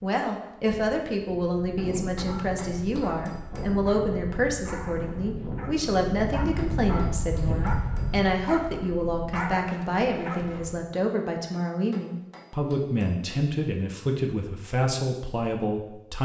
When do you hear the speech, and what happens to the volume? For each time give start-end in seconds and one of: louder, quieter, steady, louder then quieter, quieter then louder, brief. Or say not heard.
0.0-16.2 steady.